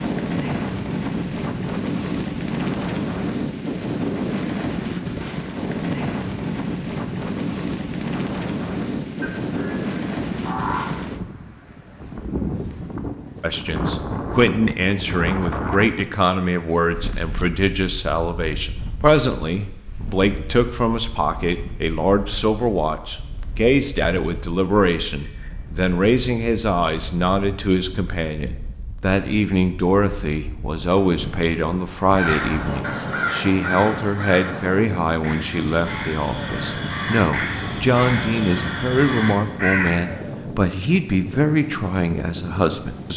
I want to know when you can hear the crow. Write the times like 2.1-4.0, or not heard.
9.2-11.1, 32.1-40.2.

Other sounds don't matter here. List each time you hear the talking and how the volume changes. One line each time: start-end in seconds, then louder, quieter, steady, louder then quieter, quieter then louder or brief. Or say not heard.
13.4-43.1 steady.